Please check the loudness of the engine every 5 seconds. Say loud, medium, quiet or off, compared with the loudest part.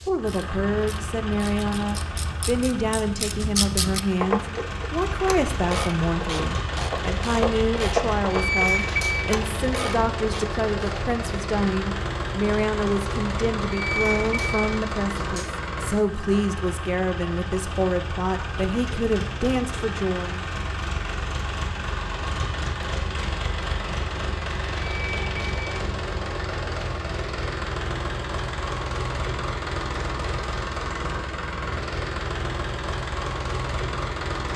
medium, loud, loud, loud, loud, loud, loud.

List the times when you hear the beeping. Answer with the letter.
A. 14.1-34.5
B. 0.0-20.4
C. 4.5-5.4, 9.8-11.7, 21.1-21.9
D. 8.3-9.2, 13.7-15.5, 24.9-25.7
D.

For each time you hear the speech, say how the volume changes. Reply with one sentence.
The speech can be heard from 0.0 to 20.4 s, at a steady volume.